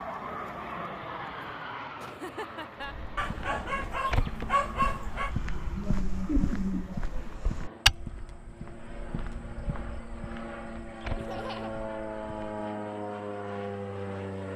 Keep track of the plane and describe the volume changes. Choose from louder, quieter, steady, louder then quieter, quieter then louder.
quieter then louder.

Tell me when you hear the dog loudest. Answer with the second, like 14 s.
5 s.